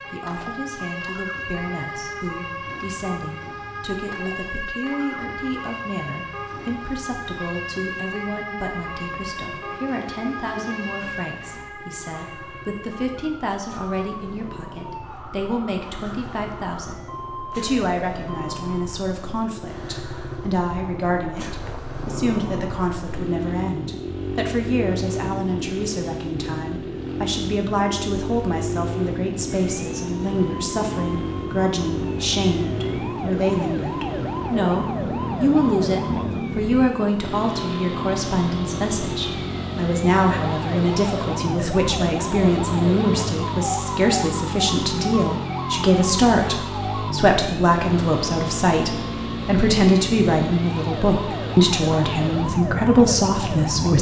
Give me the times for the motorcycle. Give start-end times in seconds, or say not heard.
0.1-53.9.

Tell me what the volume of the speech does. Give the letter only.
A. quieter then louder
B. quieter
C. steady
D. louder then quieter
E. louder
E.